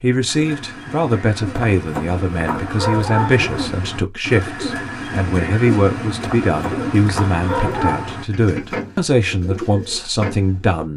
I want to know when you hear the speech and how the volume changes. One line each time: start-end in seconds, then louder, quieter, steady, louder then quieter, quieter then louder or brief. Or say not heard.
0.0-10.9 steady.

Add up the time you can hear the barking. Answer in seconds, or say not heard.
4 s.